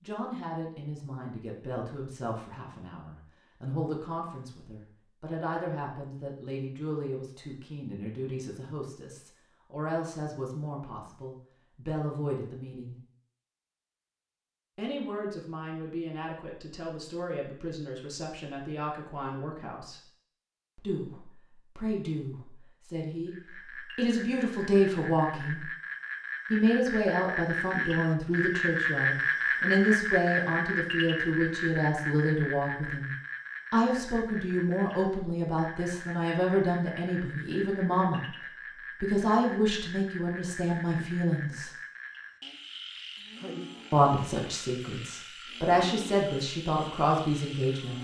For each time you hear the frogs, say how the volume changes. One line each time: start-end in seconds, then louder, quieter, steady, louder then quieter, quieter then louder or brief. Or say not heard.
23.2-47.9 louder then quieter.